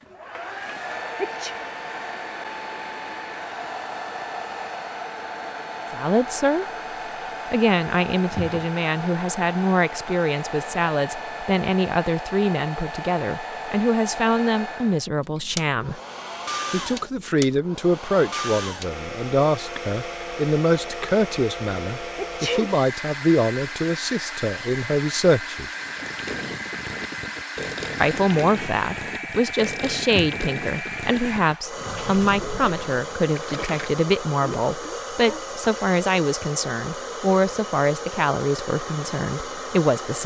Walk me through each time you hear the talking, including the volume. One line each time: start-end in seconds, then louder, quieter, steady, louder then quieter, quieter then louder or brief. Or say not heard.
5.9-6.7 brief
7.5-16.0 steady
16.7-25.7 steady
28.0-40.2 steady.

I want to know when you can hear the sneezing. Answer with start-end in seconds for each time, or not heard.
0.8-1.6, 22.1-22.7.